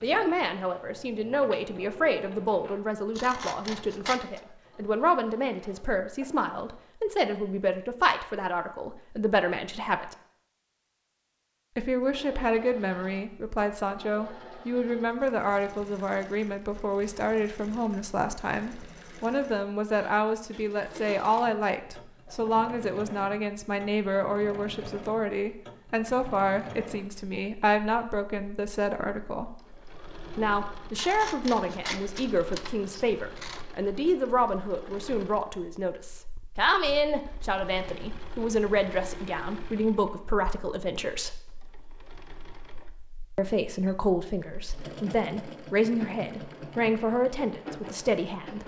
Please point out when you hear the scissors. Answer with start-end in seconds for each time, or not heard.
3.1-4.4, 30.9-33.6.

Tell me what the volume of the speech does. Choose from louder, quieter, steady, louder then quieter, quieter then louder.
steady.